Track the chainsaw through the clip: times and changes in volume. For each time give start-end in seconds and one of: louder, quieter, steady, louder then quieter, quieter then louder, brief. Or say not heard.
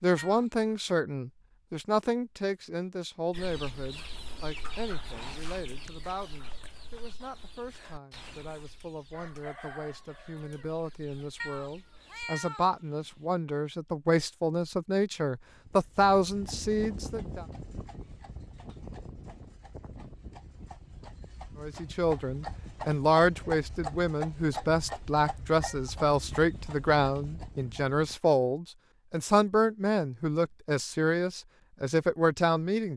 not heard.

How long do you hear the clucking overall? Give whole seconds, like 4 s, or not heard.
9 s.